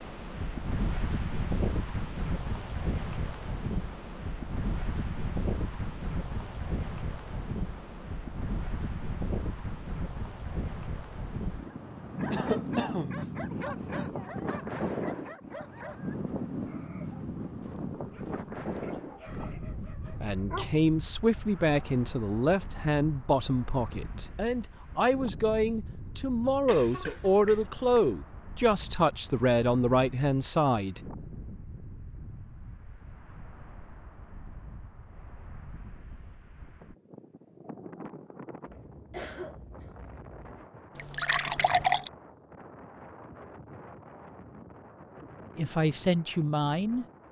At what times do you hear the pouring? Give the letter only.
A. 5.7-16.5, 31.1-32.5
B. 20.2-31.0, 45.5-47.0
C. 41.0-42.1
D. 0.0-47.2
C.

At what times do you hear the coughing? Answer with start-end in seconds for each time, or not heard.
12.3-13.2, 26.6-28.0, 39.1-40.0.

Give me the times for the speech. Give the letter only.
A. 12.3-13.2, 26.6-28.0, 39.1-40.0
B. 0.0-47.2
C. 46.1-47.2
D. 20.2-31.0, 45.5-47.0
D.